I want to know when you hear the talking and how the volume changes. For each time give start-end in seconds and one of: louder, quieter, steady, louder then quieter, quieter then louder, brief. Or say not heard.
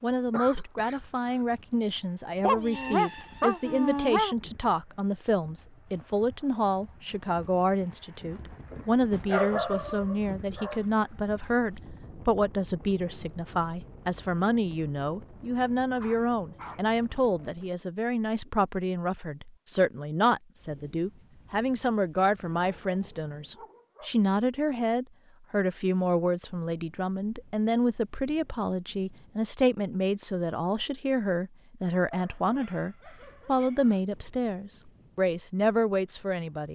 0.0-36.7 steady.